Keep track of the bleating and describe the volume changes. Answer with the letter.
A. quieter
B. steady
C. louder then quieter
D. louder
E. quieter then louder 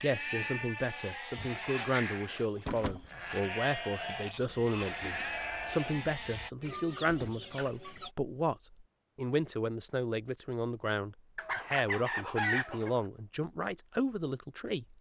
B.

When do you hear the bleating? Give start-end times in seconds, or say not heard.
0.0-6.5.